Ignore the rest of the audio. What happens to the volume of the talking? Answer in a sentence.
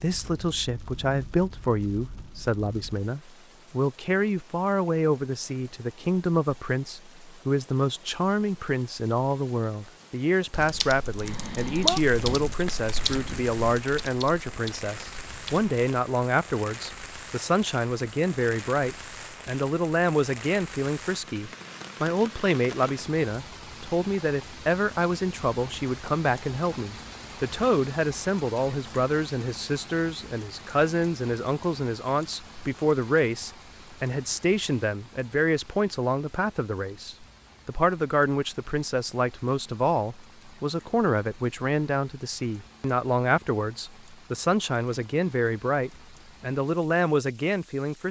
The volume of the talking stays about the same.